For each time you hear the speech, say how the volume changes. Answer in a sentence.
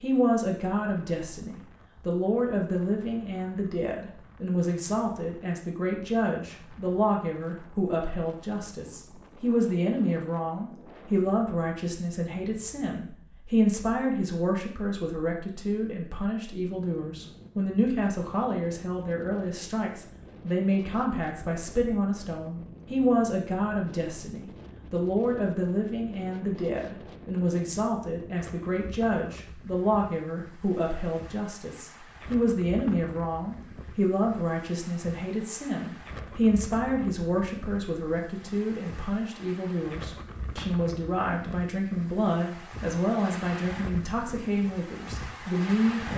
The speech can be heard from 0.0 to 46.1 s, at a steady volume.